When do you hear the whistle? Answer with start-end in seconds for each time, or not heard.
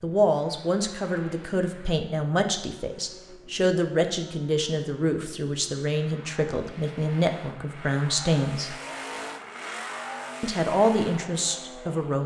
not heard.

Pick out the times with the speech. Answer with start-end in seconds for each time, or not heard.
0.0-8.8, 10.4-12.2.